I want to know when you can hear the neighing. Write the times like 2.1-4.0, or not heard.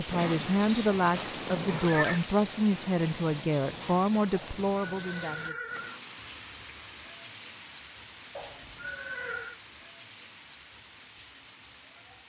0.1-2.2, 4.3-6.0, 8.3-9.6.